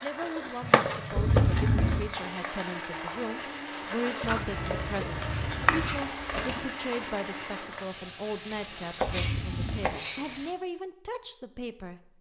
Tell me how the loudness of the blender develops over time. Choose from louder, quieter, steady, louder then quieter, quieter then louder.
steady.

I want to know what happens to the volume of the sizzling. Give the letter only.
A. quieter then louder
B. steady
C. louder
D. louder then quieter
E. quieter
B.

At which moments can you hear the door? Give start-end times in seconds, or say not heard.
1.1-2.0, 5.3-6.5, 9.1-9.8.